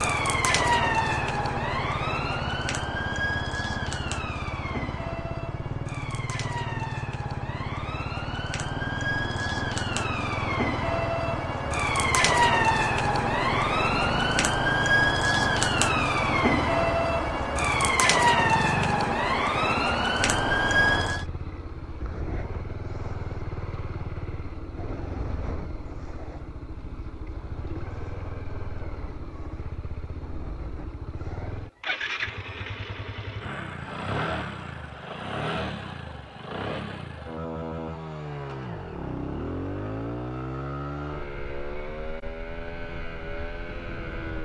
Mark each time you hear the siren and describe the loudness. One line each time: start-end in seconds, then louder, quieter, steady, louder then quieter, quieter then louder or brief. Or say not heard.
0.0-21.2 quieter then louder.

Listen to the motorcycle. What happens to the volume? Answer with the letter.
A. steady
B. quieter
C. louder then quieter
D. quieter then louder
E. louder
A.